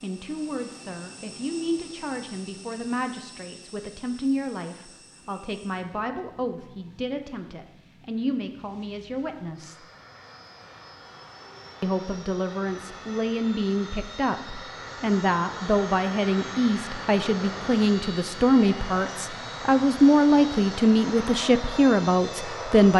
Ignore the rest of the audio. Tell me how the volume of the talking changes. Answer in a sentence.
The volume of the talking goes up.